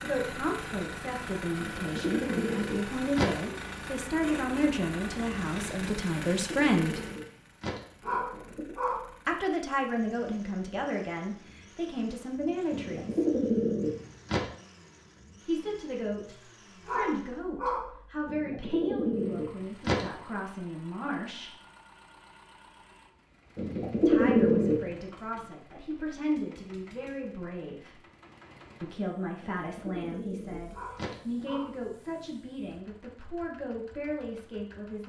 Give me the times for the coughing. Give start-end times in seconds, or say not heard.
not heard.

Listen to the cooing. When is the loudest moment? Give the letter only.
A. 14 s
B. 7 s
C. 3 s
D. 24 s
D.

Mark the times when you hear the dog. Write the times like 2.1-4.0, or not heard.
8.0-9.1, 16.9-17.9, 30.7-31.8.